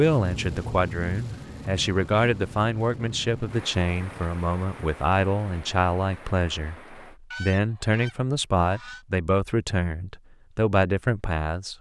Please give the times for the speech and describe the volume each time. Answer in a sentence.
You can hear the speech from 0.0 to 11.7 s, at a steady volume.